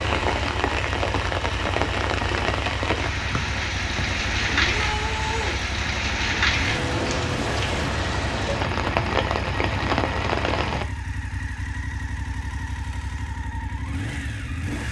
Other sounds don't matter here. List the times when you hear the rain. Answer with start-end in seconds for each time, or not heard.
0.0-10.8.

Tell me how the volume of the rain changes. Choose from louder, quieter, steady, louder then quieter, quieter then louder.
steady.